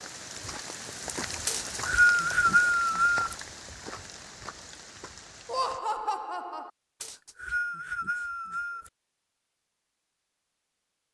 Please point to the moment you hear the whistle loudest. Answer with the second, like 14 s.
2 s.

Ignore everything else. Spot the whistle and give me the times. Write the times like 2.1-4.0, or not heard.
1.4-3.4, 7.0-8.9.